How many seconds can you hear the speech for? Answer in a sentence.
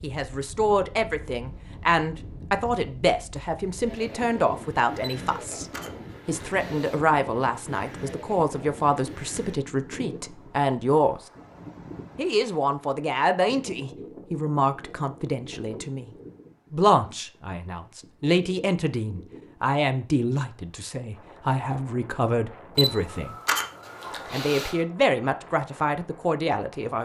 You can hear the speech for 24 seconds altogether.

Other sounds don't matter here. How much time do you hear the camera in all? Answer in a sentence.
The camera can be heard for 4 seconds in total.